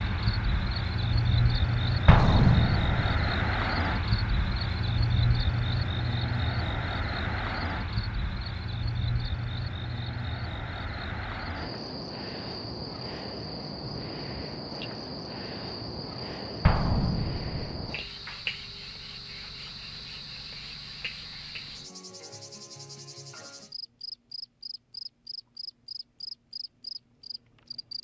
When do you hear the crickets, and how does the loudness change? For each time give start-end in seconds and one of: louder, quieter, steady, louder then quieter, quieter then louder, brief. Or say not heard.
0.0-27.9 quieter.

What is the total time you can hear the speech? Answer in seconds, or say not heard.
not heard.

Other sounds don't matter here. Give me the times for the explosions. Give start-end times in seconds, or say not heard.
2.0-3.4, 16.6-17.8.